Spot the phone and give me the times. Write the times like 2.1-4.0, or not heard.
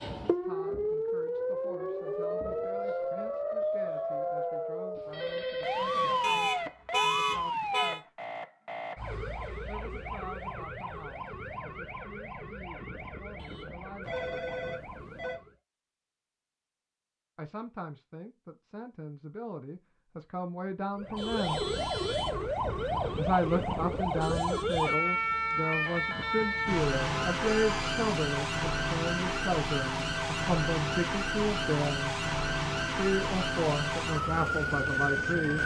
5.0-6.7, 14.0-15.4, 27.4-28.1.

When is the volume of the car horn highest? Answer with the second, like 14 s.
7 s.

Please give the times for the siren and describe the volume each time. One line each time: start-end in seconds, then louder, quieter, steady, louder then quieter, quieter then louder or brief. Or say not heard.
0.0-15.6 quieter
20.9-35.6 steady.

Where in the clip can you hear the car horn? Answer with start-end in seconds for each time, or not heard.
6.2-8.0, 26.9-27.9.